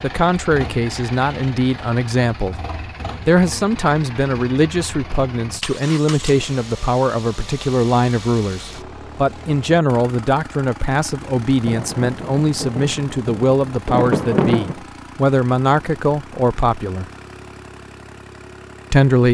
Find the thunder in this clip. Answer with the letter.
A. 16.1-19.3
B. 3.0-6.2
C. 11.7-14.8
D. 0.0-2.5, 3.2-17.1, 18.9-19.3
C.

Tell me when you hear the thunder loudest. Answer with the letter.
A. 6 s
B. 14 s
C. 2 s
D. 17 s
B.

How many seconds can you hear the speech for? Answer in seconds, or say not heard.
17 s.